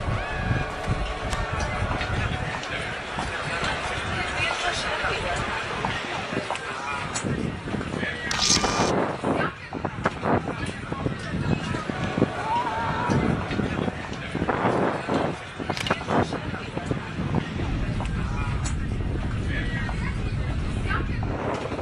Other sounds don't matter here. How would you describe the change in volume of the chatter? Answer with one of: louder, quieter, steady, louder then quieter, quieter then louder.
quieter.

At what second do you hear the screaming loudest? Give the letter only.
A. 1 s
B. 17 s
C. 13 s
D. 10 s
C.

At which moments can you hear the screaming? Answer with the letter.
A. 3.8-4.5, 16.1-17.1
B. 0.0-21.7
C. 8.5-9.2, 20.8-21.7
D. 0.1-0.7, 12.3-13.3
D.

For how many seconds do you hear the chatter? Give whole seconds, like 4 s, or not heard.
22 s.